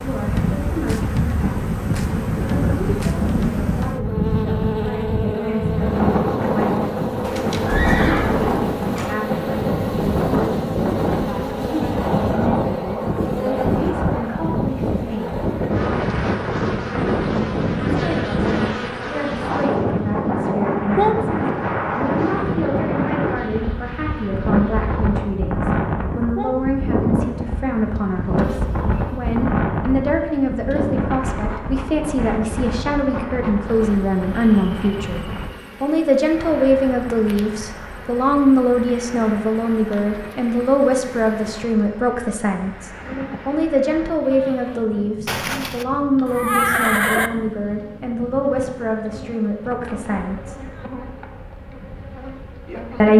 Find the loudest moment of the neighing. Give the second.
47 s.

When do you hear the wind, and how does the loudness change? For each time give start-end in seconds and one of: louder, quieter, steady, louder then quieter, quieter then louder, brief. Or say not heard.
0.0-53.1 quieter.